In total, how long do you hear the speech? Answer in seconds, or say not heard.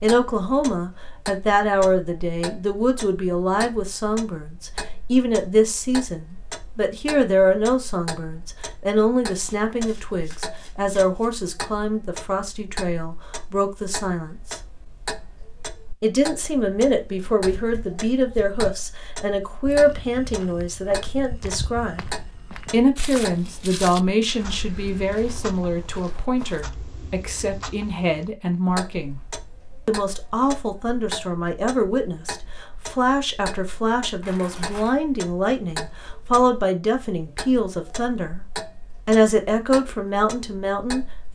38 s.